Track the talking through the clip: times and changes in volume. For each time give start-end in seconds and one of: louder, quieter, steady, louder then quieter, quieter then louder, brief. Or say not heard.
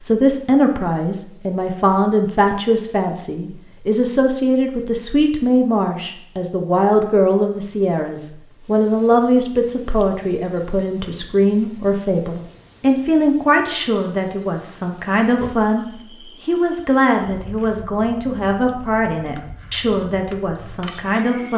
0.0-21.5 steady.